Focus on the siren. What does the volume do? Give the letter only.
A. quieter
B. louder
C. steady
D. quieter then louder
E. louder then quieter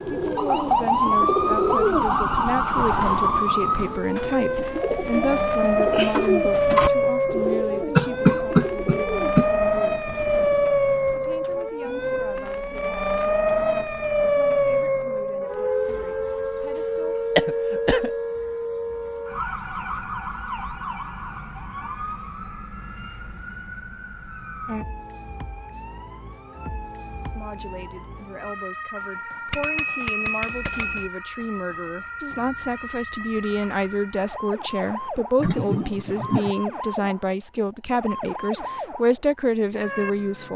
A.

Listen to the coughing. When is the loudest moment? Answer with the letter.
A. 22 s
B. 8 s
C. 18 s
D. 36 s
B.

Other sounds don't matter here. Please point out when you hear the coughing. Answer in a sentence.
You can hear the coughing from 8.0 to 9.5 s, from 17.4 to 18.1 s and from 35.4 to 36.5 s.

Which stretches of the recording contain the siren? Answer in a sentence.
The siren can be heard from 0.0 to 40.5 s.